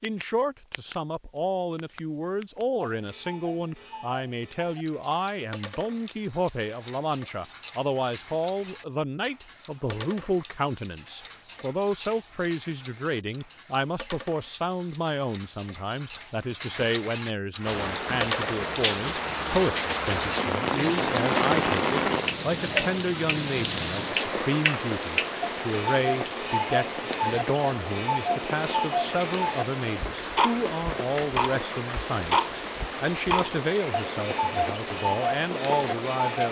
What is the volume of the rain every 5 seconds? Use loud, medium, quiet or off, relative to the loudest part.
off, off, off, loud, loud, medium, medium, medium.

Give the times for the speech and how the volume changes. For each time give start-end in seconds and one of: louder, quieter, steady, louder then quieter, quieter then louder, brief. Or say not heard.
0.0-36.4 steady.